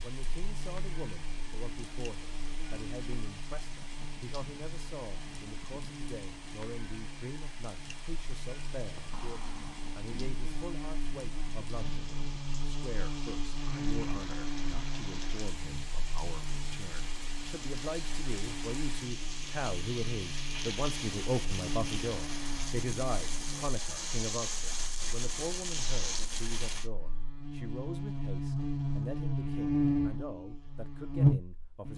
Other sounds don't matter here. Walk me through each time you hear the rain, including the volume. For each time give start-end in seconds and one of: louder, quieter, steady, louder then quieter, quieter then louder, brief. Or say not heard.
0.0-26.9 louder.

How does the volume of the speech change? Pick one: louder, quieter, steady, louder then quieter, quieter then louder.
louder then quieter.